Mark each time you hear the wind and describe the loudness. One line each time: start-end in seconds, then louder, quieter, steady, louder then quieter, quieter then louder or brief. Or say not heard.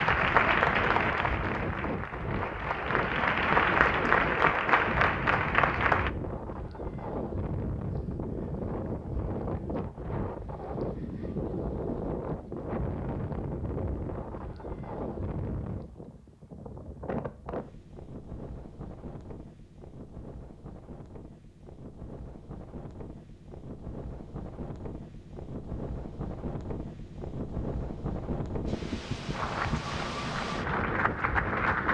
0.0-31.8 quieter then louder.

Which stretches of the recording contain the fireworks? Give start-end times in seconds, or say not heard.
not heard.